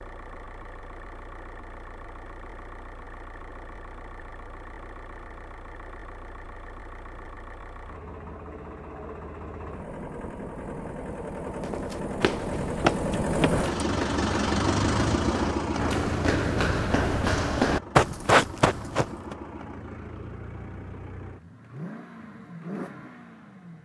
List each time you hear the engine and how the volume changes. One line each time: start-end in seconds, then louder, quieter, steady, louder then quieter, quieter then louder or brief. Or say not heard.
0.0-23.8 louder then quieter.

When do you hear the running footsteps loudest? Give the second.
18 s.